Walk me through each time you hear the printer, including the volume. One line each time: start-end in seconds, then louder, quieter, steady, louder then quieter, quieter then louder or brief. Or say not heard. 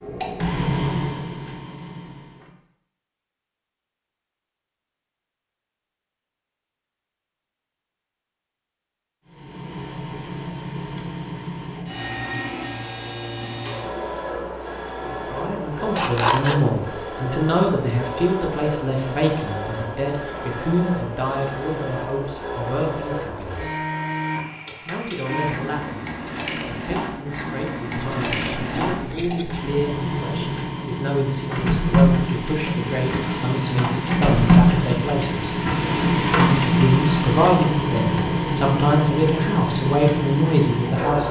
0.0-2.5 brief
9.2-41.2 louder.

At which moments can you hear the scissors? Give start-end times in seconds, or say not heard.
15.9-16.6, 27.9-29.6.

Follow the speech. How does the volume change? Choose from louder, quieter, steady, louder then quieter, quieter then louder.
quieter then louder.